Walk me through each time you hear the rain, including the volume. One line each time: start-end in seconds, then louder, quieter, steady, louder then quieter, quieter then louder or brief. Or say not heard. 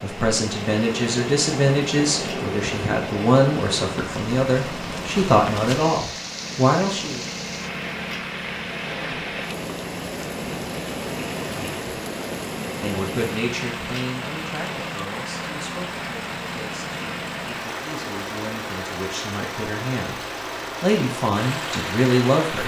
0.0-22.6 steady.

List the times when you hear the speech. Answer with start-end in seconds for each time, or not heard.
0.0-7.2, 12.8-20.2, 20.8-22.6.